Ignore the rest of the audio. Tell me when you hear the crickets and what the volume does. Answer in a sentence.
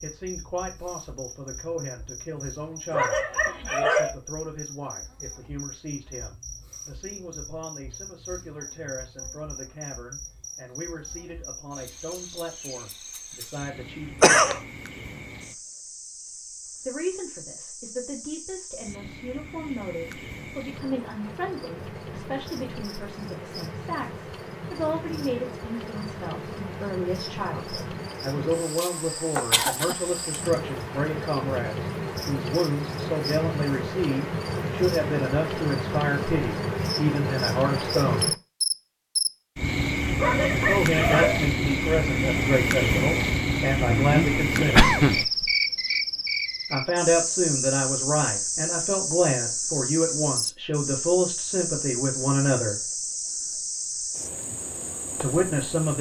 The crickets can be heard from 0.0 to 55.9 s, getting louder.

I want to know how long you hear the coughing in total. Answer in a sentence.
The coughing can be heard for 3 seconds in total.